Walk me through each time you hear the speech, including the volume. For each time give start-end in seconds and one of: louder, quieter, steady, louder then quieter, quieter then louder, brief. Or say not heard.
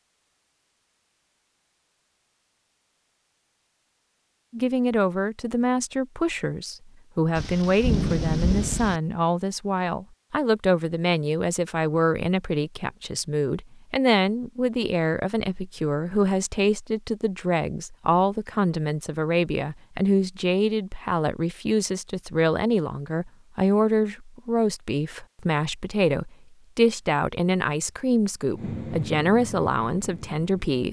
4.5-30.8 steady.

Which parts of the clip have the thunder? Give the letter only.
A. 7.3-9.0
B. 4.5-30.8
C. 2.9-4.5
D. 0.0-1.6
A.